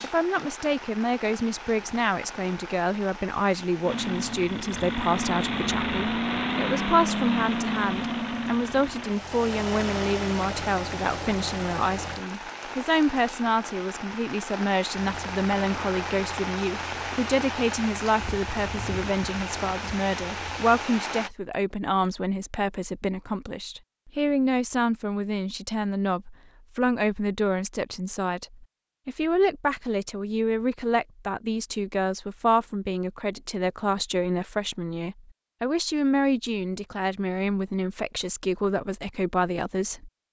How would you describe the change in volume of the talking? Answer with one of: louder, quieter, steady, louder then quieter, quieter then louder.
steady.